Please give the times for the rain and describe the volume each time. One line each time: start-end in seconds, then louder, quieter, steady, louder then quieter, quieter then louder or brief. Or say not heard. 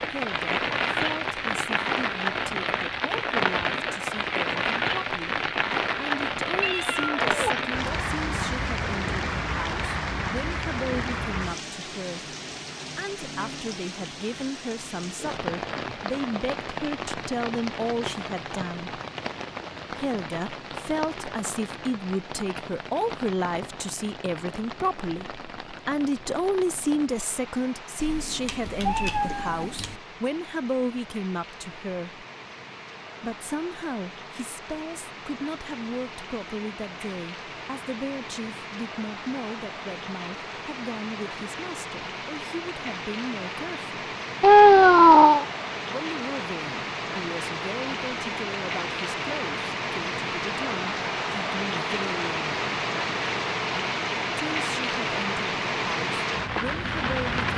0.0-57.5 quieter then louder.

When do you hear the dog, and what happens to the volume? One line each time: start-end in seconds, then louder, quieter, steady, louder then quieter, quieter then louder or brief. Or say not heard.
not heard.